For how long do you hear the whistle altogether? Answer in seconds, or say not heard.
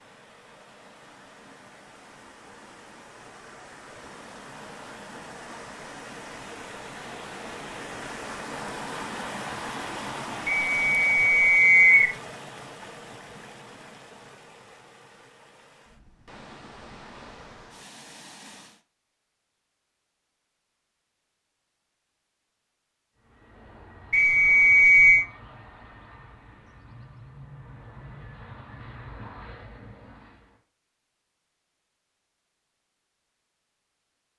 3 s.